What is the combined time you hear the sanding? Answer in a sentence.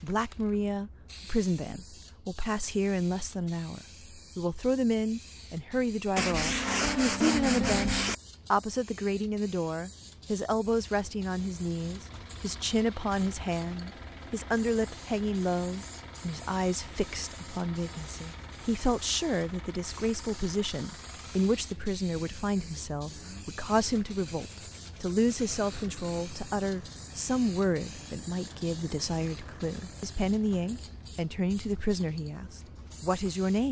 The sanding can be heard for 4 seconds in total.